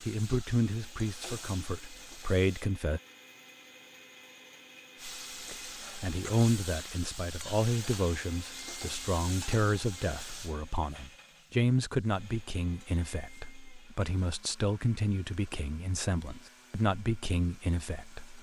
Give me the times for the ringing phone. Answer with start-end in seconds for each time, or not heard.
not heard.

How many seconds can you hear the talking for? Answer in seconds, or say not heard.
16 s.